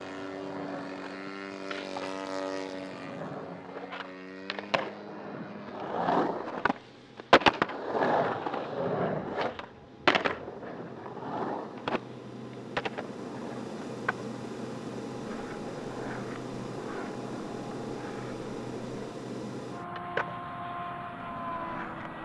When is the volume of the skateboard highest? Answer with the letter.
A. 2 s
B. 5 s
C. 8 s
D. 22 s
C.